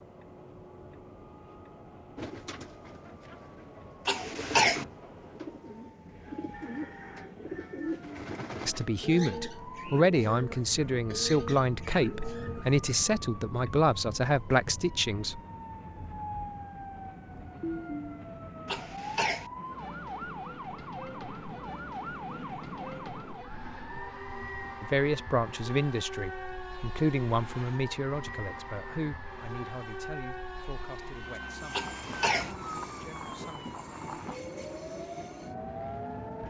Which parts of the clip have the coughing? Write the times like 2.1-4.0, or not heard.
4.0-4.8, 18.6-19.5, 31.7-32.5.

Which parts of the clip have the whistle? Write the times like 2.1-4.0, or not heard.
not heard.